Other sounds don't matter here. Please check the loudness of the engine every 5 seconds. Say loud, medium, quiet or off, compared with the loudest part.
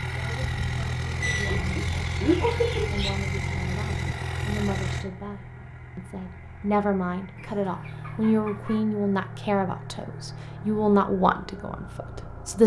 loud, medium, medium.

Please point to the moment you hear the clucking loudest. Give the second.
2 s.